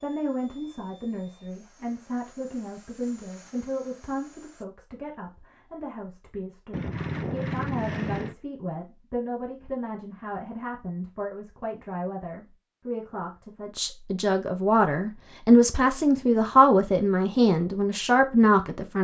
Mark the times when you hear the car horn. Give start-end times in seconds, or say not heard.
6.7-8.3.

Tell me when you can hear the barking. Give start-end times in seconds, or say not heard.
not heard.